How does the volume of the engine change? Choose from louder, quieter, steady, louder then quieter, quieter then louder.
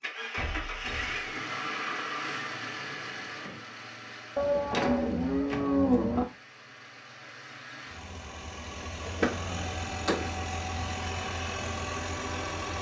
quieter then louder.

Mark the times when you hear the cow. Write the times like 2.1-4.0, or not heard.
4.3-6.2.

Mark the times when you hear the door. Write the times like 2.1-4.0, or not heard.
0.3-1.2, 4.7-6.0, 9.1-10.4.